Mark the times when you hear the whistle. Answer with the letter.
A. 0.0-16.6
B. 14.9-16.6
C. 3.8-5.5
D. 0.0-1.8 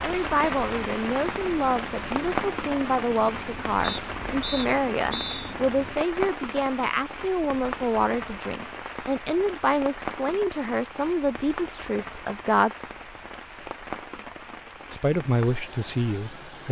C.